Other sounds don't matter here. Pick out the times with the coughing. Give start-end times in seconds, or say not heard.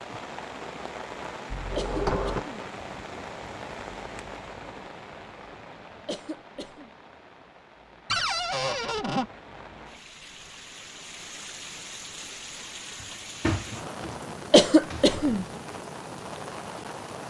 1.8-2.5, 6.0-6.9, 14.5-15.4.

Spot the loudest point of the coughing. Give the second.
15 s.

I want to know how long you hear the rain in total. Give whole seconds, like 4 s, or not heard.
17 s.